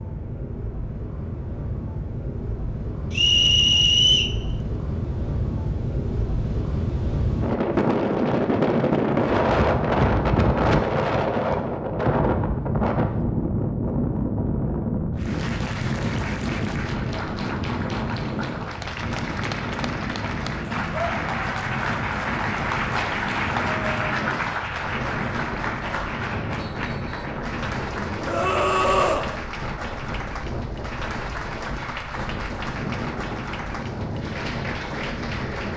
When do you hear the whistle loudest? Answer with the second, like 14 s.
4 s.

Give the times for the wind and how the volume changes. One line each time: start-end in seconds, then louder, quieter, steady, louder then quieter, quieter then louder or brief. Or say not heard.
0.0-35.7 louder then quieter.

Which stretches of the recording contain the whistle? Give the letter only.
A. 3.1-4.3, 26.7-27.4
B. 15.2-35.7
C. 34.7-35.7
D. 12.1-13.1
A.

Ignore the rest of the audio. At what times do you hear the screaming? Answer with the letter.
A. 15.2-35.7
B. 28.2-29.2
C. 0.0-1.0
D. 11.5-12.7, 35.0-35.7
B.